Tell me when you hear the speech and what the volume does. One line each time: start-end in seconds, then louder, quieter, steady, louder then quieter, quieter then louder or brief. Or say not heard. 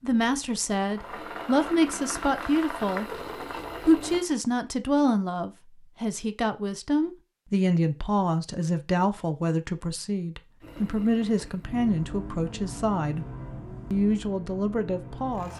0.0-13.2 steady
13.9-15.5 brief.